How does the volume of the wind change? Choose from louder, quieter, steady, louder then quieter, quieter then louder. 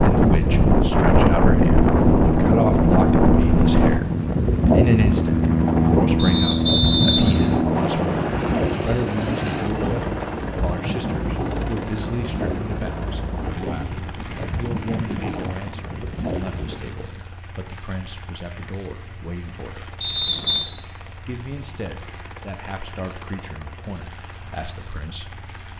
quieter.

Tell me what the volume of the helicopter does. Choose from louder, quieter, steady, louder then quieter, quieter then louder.
quieter.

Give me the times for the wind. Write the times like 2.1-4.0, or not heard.
0.0-17.2.